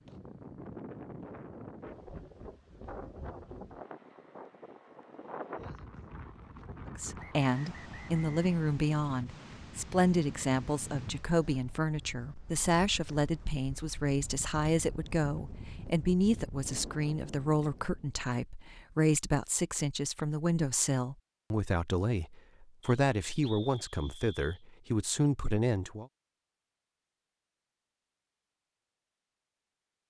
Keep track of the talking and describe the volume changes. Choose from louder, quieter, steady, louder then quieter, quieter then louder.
steady.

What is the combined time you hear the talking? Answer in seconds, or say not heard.
19 s.